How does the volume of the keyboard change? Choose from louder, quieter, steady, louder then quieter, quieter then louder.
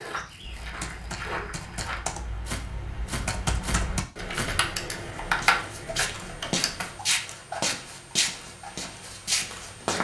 louder.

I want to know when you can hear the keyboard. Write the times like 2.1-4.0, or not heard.
0.4-7.0.